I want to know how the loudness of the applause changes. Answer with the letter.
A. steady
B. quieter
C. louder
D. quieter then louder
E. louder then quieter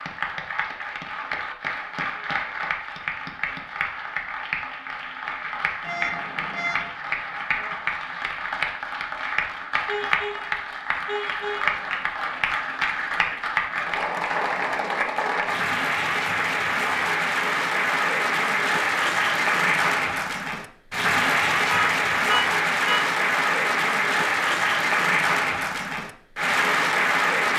C.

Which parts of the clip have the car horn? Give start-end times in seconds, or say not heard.
5.8-6.9, 9.8-11.7, 21.6-23.0.